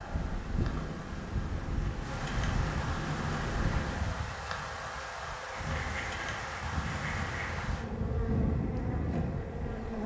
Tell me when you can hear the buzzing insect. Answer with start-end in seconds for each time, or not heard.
0.0-10.0.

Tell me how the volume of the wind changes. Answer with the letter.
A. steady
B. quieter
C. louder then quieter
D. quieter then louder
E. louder
D.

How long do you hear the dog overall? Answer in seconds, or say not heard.
not heard.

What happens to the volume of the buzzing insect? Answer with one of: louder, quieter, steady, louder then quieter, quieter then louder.
louder.